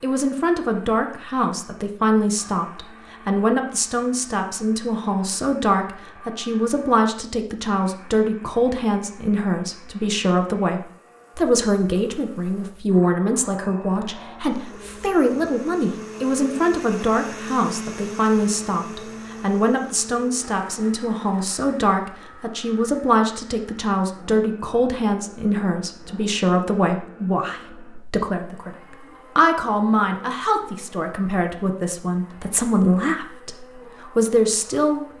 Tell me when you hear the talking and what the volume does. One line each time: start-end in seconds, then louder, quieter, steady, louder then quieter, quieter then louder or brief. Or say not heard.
0.0-35.0 steady.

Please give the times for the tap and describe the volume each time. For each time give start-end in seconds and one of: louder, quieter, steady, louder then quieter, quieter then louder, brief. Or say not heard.
not heard.